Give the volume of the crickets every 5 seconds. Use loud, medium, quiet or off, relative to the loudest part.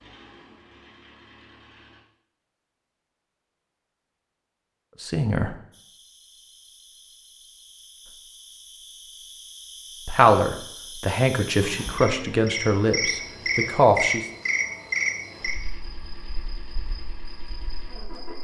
off, quiet, loud, medium.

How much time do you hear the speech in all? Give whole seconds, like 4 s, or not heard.
5 s.